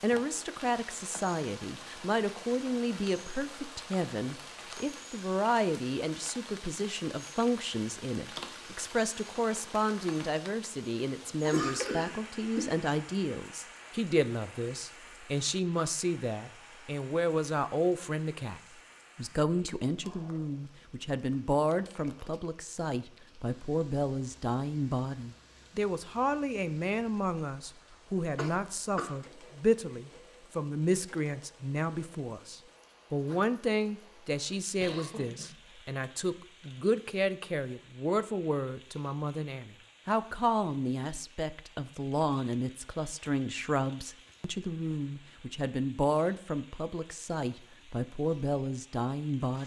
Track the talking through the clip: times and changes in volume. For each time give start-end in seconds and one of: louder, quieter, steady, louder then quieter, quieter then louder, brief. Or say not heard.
0.0-49.6 steady.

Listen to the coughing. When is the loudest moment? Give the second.
12 s.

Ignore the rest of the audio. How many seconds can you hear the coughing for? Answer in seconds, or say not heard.
3 s.